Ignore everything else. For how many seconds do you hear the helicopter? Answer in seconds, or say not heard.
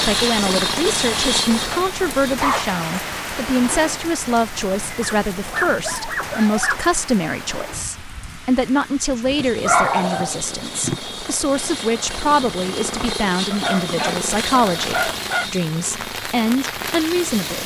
11 s.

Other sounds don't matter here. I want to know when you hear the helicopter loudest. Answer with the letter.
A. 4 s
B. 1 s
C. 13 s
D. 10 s
B.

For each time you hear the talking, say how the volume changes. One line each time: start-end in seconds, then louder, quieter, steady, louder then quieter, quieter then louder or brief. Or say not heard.
0.1-17.6 steady.